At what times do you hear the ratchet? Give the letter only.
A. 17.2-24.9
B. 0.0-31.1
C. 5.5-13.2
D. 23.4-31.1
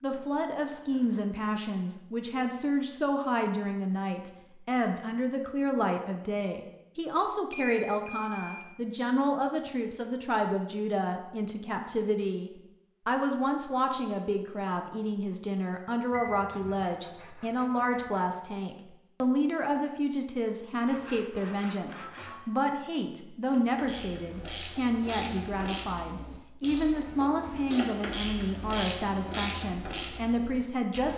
D.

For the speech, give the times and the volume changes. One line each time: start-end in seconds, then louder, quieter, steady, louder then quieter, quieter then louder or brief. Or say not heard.
0.0-31.1 steady.